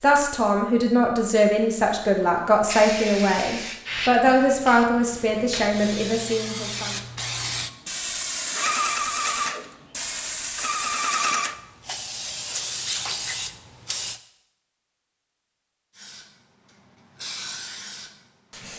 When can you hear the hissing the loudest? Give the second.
9 s.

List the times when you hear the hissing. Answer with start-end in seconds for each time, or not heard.
2.6-14.2, 15.9-18.7.